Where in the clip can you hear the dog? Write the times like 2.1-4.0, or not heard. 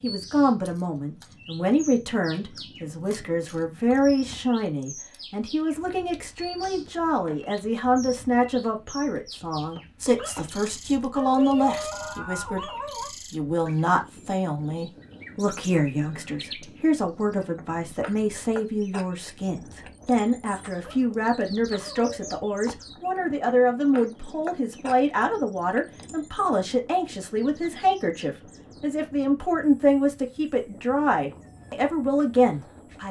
10.2-13.2, 20.8-22.4.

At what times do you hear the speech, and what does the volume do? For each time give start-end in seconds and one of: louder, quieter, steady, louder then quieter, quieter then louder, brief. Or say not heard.
0.0-33.0 steady.